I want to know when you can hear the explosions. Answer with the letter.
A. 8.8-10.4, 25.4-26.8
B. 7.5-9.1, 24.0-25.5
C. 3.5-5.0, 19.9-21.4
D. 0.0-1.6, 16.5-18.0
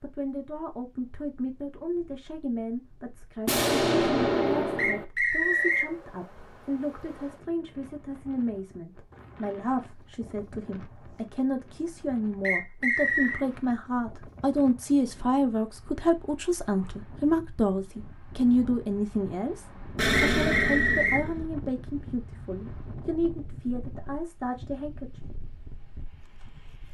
C.